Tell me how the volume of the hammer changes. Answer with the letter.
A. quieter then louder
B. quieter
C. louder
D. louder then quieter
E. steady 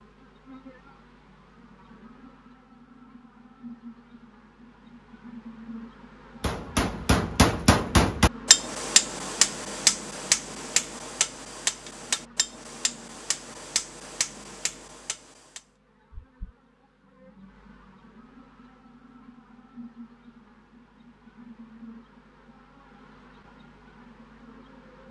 B.